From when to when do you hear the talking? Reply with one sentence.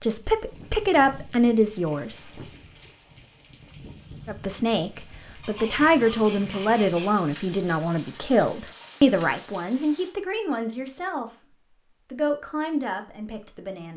The talking can be heard from 0.0 to 2.3 s, from 4.2 to 11.3 s and from 12.1 to 13.9 s.